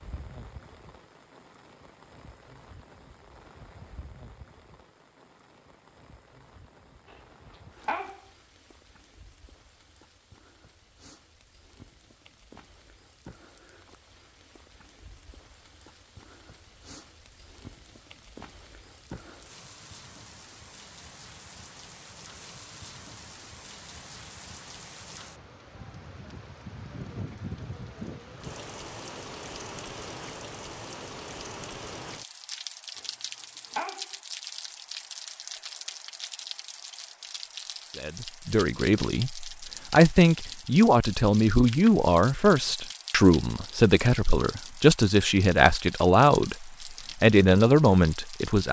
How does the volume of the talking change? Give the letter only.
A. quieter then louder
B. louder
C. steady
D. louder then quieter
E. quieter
C.